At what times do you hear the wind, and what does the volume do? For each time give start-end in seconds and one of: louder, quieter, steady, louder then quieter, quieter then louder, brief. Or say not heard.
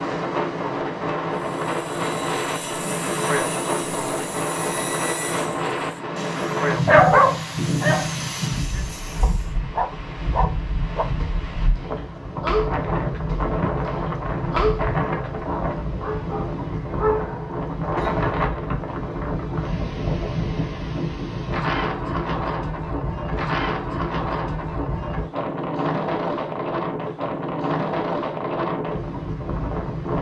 0.0-30.1 steady.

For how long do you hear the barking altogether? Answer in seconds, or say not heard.
11 s.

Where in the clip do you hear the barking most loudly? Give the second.
7 s.